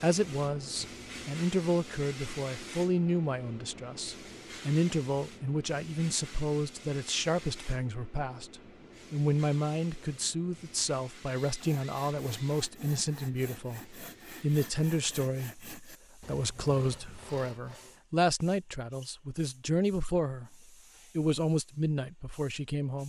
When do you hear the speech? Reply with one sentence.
The speech can be heard from 0.0 to 20.6 s and from 21.1 to 23.0 s.